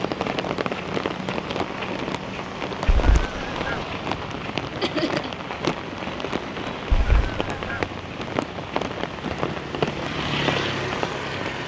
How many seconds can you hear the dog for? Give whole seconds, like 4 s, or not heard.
not heard.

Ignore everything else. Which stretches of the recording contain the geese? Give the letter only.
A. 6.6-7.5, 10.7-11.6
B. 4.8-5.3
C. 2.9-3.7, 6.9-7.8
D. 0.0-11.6
C.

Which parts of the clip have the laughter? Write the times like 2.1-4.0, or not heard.
4.8-5.3.